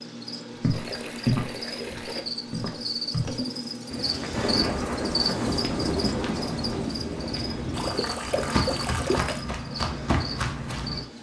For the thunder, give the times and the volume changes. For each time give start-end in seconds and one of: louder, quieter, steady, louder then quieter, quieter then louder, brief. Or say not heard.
4.3-9.0 quieter.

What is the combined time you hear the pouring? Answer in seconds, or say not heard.
3 s.